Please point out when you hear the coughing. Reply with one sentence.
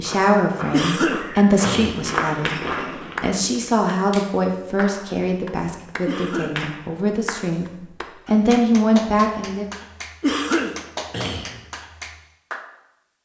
You can hear the coughing from 0.7 to 2.1 s, from 6.0 to 6.5 s and from 10.2 to 11.6 s.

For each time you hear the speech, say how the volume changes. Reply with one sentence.
You can hear the speech briefly from 0.0 to 2.6 s; and from 3.2 to 9.7 s, getting quieter then louder.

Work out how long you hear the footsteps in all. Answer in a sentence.
You can hear the footsteps for 3 seconds altogether.